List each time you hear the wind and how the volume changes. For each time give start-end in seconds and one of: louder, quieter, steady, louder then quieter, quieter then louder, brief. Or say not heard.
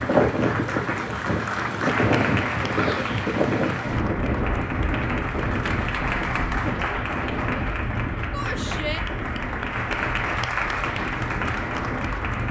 0.0-12.4 quieter.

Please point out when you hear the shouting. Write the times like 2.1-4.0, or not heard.
2.7-3.2, 8.3-9.0.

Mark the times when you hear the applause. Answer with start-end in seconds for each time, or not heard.
0.0-12.4.